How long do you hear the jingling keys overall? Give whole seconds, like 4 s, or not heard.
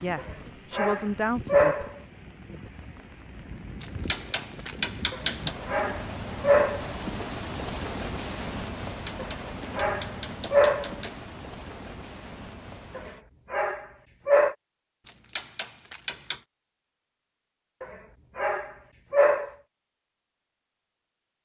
6 s.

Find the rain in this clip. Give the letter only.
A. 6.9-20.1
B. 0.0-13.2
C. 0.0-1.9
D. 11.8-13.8
B.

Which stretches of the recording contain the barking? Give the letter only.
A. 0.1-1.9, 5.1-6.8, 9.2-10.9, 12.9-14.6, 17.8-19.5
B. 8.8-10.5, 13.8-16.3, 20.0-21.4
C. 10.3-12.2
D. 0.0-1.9
A.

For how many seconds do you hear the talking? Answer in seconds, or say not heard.
2 s.